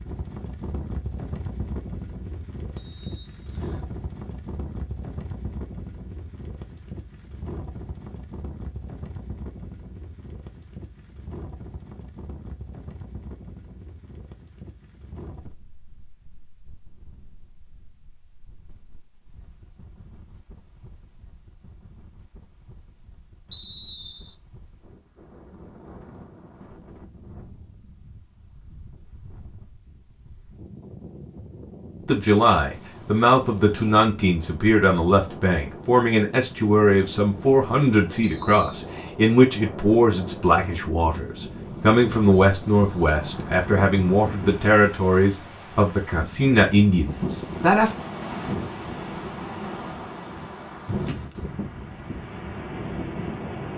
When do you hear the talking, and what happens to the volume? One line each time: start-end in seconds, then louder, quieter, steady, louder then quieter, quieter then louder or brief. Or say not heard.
32.0-48.0 steady.